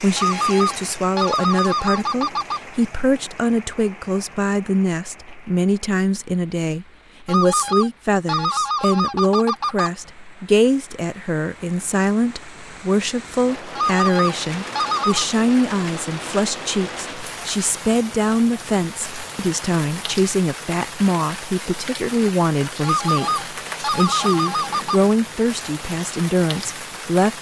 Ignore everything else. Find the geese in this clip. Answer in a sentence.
You can hear the geese from 0.1 to 2.6 s, from 7.2 to 9.9 s, from 13.8 to 15.2 s and from 22.8 to 25.0 s.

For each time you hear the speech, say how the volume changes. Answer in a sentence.
You can hear the speech from 0.0 to 27.3 s, at a steady volume.